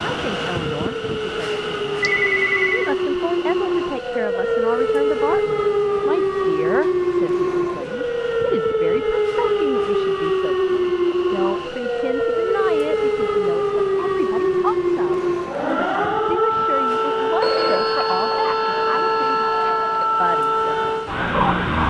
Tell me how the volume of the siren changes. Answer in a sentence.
The loudness of the siren stays about the same.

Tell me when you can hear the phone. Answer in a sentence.
The phone can be heard from 2.0 to 2.9 s and from 17.4 to 20.1 s.